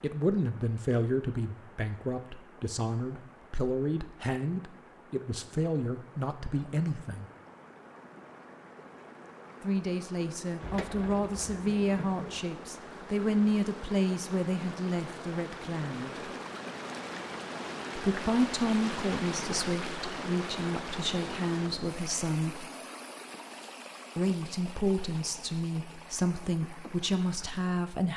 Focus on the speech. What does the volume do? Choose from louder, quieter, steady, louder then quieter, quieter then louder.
steady.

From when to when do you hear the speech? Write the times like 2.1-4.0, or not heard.
0.0-7.2, 9.6-16.3, 17.9-22.6, 24.1-28.1.